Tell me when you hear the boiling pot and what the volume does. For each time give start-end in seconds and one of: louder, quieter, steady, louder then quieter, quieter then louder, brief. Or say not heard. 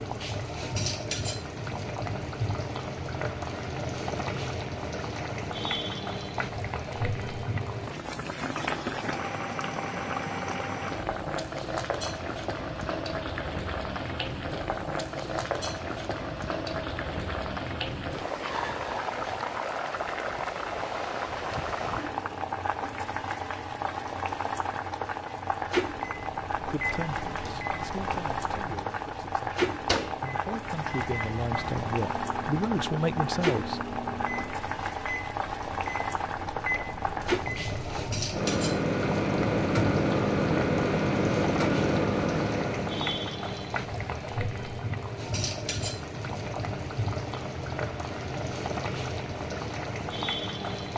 0.0-50.9 steady.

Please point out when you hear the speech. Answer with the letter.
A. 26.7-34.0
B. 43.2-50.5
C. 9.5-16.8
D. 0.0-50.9
A.